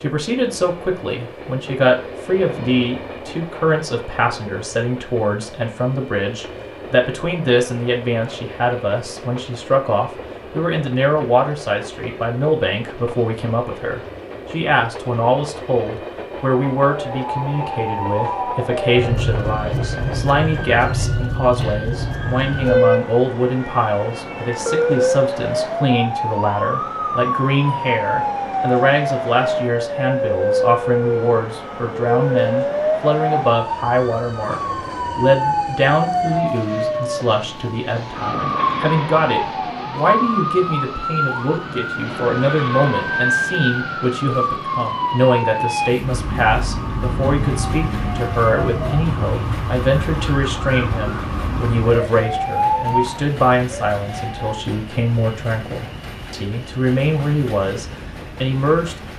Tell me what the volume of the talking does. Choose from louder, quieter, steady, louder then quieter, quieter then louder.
steady.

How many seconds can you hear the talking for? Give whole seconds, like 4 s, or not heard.
59 s.